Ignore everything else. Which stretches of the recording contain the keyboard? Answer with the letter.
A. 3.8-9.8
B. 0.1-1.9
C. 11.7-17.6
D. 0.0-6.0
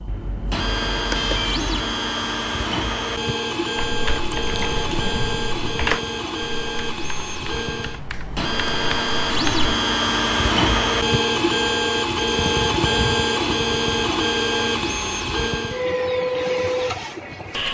A.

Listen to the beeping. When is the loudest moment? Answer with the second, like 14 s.
1 s.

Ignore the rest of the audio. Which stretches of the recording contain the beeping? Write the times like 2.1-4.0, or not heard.
0.1-1.9.